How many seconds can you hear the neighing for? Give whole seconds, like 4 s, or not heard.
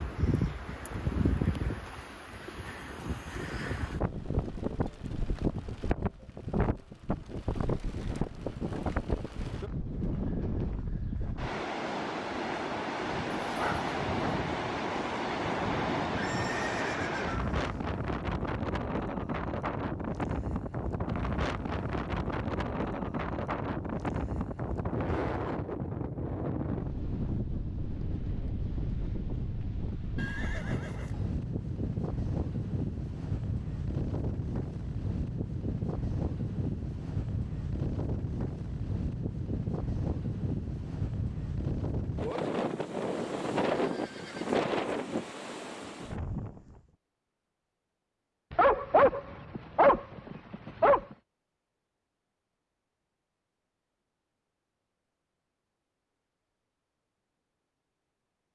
4 s.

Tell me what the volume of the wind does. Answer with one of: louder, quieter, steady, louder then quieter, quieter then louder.
steady.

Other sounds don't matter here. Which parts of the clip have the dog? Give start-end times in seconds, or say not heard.
13.4-14.4, 48.5-51.0.